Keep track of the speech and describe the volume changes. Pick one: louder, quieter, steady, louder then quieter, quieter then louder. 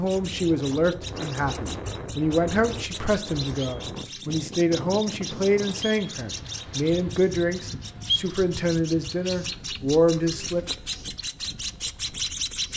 steady.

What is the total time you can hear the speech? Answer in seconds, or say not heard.
11 s.